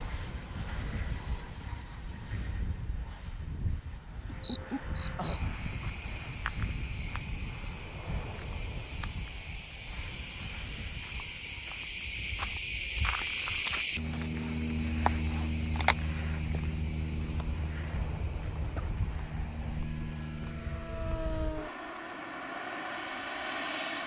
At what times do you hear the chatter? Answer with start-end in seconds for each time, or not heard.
not heard.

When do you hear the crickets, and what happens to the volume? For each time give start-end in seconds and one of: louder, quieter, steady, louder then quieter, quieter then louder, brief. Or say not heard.
4.2-24.0 louder then quieter.